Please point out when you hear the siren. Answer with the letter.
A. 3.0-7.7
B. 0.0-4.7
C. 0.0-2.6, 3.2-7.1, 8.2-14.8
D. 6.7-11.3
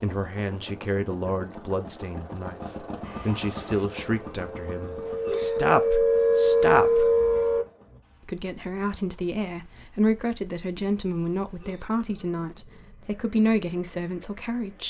A.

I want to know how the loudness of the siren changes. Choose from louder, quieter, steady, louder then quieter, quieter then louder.
louder.